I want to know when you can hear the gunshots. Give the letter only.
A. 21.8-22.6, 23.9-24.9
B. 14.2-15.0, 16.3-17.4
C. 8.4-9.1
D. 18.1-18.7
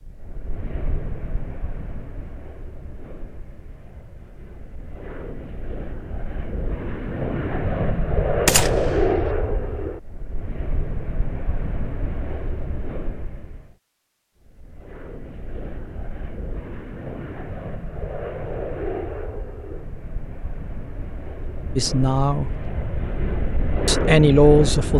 C.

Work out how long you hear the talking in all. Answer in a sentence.
The talking can be heard for 2 seconds in total.